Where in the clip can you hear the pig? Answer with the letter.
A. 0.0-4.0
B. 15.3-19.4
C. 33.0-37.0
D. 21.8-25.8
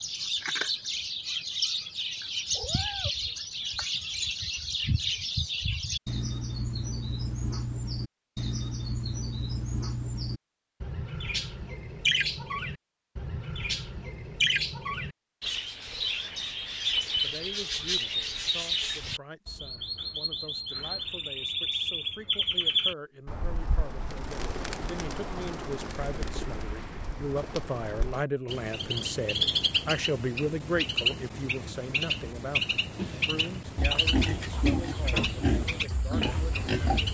C.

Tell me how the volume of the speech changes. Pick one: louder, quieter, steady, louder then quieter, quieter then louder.
louder then quieter.